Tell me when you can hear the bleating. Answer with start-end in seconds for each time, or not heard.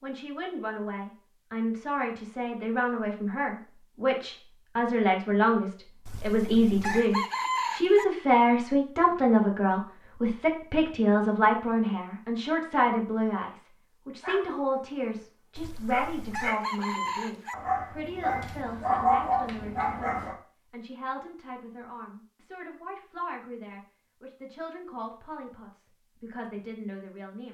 not heard.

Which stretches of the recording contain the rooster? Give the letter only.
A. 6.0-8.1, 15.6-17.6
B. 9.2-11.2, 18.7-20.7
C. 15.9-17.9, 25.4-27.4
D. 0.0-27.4
A.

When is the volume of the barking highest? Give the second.
19 s.